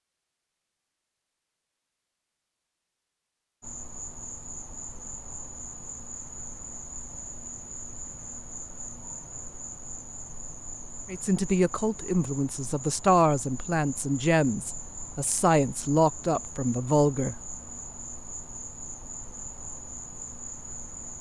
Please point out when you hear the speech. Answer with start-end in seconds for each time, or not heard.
11.1-17.4.